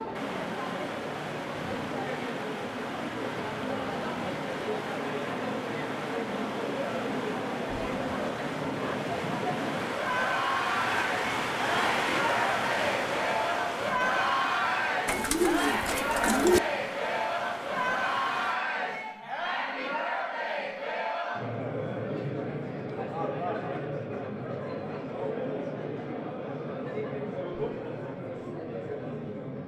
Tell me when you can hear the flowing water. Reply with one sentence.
The flowing water can be heard from 0.0 to 18.6 s.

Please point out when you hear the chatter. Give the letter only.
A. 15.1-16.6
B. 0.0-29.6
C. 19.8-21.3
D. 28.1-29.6
B.